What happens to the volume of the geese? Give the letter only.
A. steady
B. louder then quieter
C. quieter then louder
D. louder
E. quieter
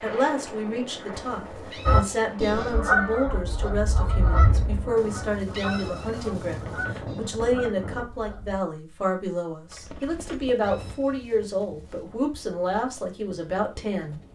E.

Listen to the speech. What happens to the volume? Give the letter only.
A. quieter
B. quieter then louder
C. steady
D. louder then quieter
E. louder
C.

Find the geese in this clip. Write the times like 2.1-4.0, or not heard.
1.9-8.6.